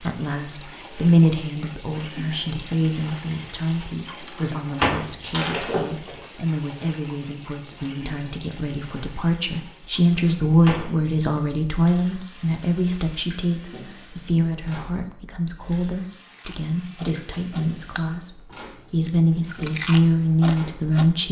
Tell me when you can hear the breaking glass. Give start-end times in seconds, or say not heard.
5.2-6.2.